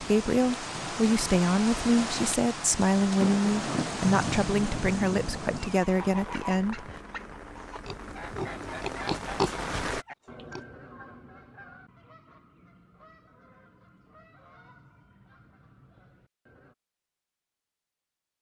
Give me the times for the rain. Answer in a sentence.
You can hear the rain from 0.0 to 10.1 s.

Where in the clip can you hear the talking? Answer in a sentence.
You can hear the talking from 0.0 to 6.9 s.